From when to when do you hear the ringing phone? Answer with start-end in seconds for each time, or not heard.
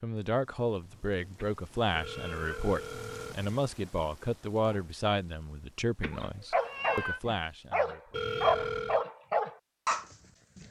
1.9-3.5, 8.1-9.1.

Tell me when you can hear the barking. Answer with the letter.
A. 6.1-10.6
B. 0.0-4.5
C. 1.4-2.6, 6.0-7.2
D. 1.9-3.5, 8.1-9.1
A.